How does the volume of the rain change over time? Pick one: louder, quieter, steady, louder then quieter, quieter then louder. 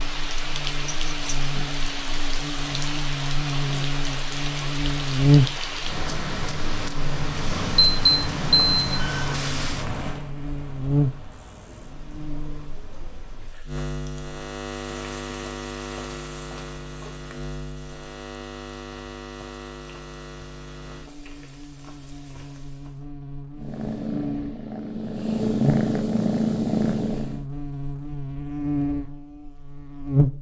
quieter.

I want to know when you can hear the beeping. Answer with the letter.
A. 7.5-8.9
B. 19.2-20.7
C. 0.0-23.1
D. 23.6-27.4
A.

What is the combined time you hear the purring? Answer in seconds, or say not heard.
4 s.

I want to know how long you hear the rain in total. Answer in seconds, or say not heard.
23 s.